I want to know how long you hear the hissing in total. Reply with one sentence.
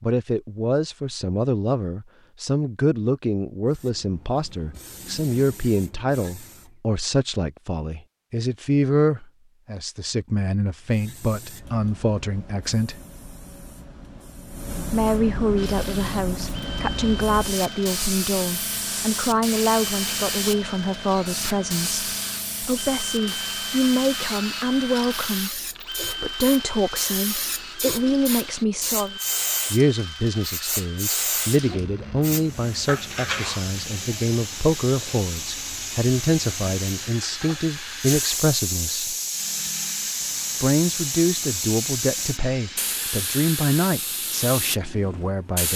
The hissing can be heard for 38 seconds in total.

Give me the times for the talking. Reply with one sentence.
You can hear the talking from 0.0 to 13.0 s, from 14.8 to 39.1 s and from 40.6 to 45.7 s.